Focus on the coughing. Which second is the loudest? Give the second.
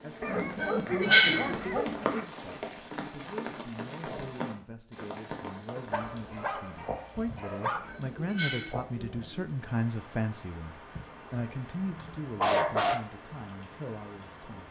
1 s.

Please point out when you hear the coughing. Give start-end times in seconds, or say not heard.
0.3-1.8, 7.7-9.4.